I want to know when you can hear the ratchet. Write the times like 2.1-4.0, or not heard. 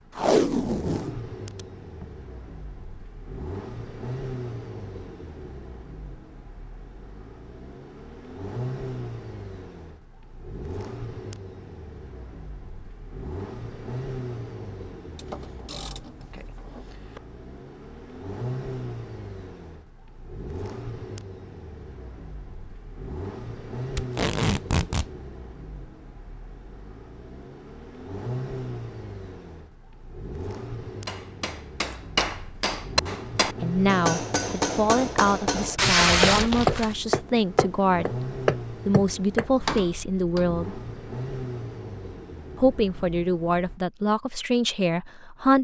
15.2-17.2.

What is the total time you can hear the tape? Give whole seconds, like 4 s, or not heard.
4 s.